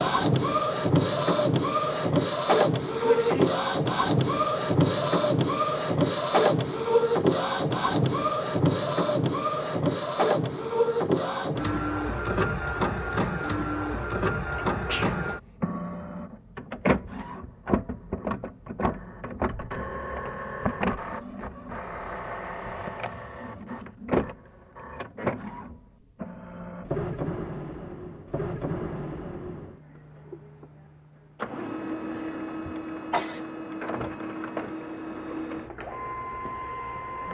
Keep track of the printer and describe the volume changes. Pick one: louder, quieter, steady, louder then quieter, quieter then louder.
quieter.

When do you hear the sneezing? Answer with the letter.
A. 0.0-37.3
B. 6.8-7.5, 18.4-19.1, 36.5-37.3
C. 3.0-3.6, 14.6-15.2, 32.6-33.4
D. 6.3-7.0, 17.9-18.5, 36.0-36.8
C.